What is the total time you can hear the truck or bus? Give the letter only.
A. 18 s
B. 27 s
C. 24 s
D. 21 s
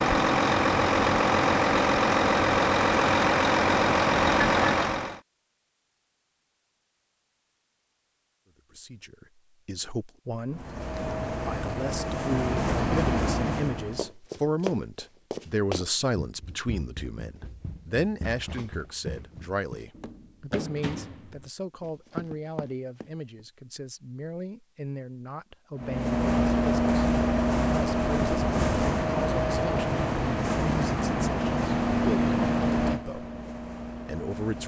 A.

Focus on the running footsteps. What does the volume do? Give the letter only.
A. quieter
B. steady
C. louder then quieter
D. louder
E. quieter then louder
E.